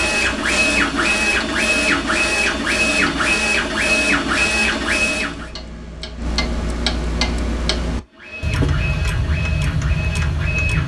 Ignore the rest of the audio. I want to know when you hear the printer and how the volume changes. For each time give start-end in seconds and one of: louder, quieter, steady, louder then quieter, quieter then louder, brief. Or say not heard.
0.0-5.5 steady
8.1-10.8 brief.